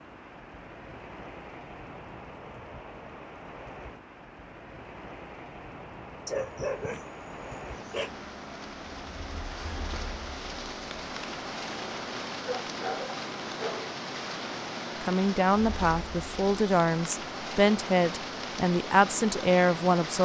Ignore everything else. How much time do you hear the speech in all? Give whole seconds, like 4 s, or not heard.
5 s.